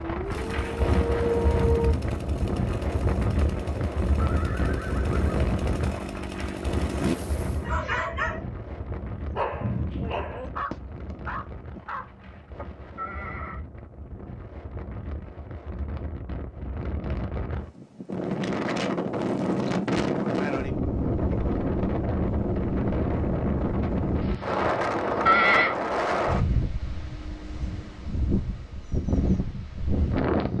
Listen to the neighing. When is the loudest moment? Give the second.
25 s.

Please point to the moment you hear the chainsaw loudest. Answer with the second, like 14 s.
7 s.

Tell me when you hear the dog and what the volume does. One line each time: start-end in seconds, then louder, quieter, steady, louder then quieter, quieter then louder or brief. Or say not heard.
0.0-1.9 brief
7.7-12.7 quieter.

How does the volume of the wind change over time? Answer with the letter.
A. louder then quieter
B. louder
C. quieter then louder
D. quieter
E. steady
C.